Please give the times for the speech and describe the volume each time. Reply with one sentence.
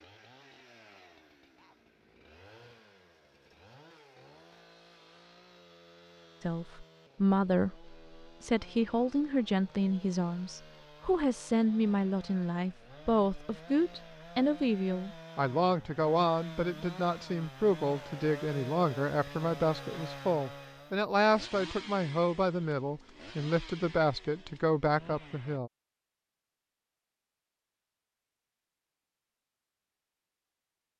You can hear the speech from 6.4 to 25.7 s, at a steady volume.